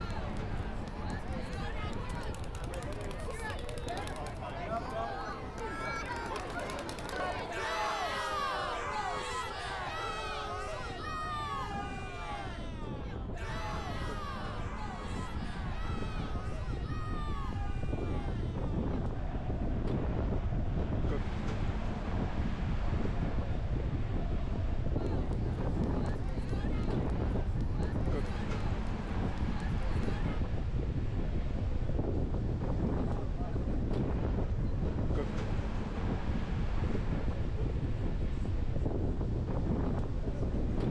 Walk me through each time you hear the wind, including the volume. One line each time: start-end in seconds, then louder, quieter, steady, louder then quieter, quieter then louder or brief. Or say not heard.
0.0-40.8 louder.